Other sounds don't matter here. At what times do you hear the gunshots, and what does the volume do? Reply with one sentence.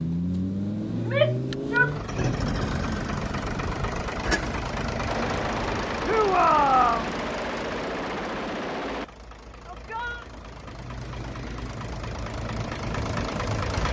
The gunshots can be heard from 5.0 to 9.1 s, at a steady volume.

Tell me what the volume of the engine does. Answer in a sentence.
The loudness of the engine goes down, then up.